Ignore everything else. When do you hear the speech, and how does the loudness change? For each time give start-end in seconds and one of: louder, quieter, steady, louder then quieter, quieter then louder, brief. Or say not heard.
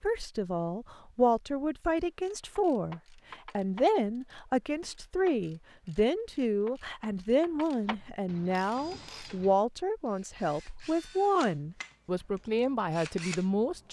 0.0-13.8 steady.